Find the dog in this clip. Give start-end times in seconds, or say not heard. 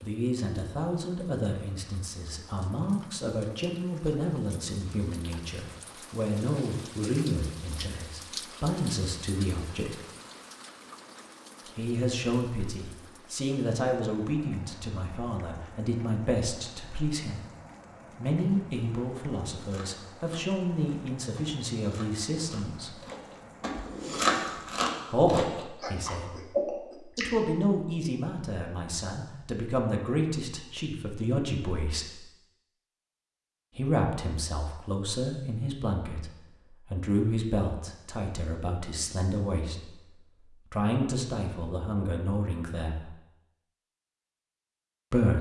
not heard.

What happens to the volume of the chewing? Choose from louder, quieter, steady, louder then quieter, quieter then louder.
louder.